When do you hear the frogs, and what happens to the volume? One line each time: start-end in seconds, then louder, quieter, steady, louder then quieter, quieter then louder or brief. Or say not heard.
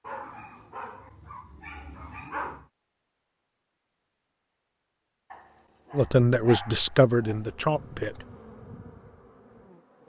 not heard.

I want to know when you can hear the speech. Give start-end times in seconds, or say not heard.
6.0-8.2.